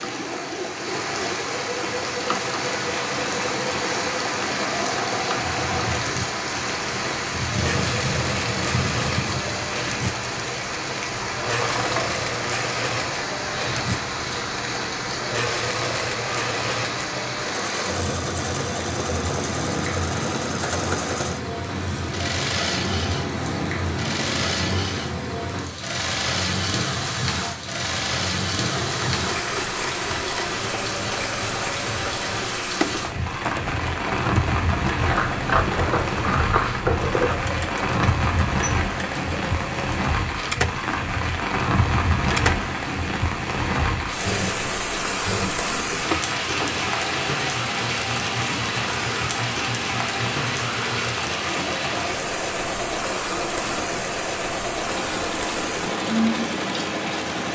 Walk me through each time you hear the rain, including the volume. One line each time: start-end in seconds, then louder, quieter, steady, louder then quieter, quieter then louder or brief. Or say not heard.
0.0-57.5 steady.